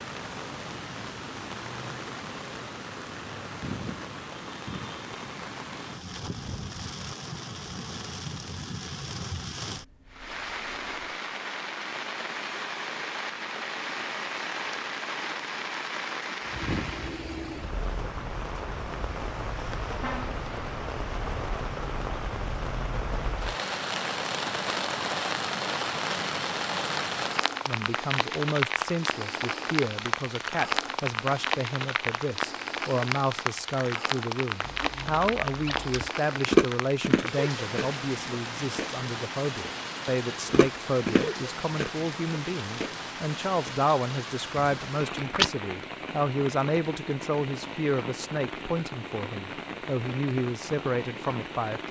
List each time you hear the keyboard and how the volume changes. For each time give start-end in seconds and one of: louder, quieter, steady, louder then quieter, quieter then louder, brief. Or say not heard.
not heard.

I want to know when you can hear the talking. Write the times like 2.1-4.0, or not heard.
27.6-51.8.